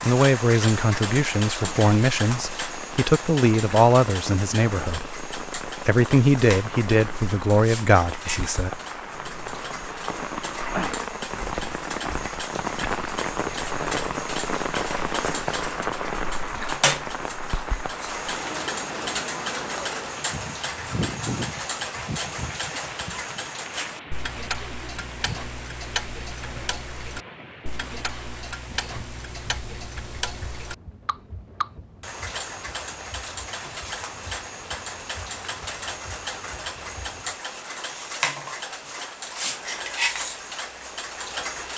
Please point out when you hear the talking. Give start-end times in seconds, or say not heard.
0.0-8.7.